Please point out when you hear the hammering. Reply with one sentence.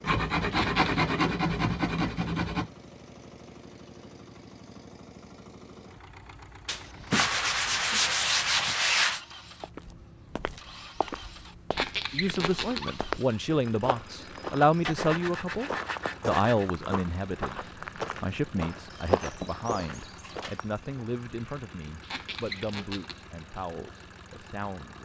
You can't hear the hammering here.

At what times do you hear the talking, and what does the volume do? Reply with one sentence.
The talking can be heard from 12.1 to 25.0 s, getting quieter.